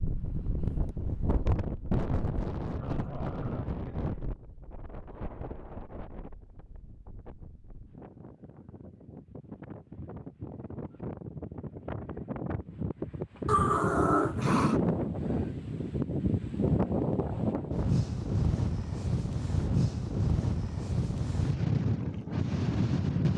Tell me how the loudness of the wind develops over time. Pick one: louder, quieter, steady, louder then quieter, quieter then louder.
quieter then louder.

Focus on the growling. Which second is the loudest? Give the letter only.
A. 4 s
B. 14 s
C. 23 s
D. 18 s
B.